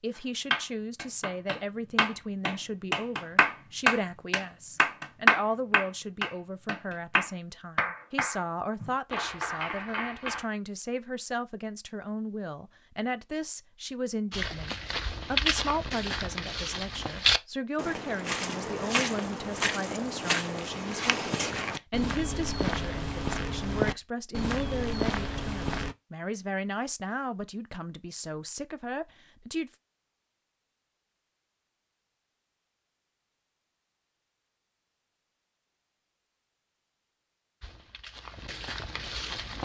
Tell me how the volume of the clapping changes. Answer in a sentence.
The loudness of the clapping goes up, then down.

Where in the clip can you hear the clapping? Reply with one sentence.
You can hear the clapping from 0.5 to 10.4 s.